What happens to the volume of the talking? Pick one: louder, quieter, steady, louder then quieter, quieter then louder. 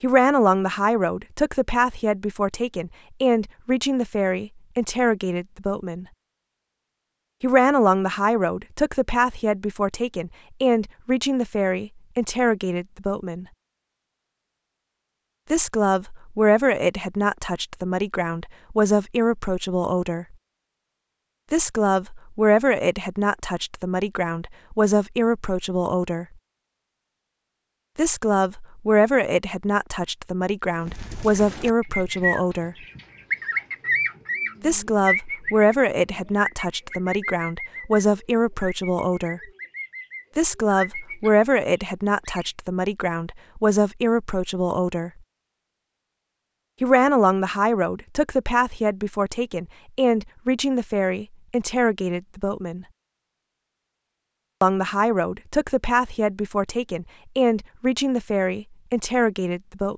steady.